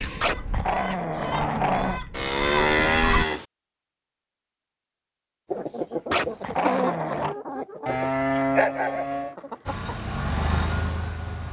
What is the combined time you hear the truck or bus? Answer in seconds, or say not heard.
2 s.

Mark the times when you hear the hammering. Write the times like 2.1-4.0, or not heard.
not heard.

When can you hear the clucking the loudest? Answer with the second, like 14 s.
7 s.